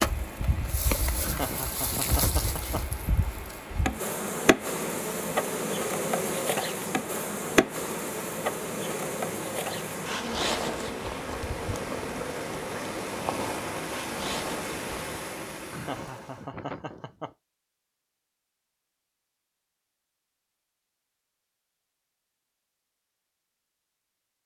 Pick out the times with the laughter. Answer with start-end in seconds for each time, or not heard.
1.1-3.0, 15.7-17.3.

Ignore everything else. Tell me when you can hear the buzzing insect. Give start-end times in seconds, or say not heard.
0.0-15.2.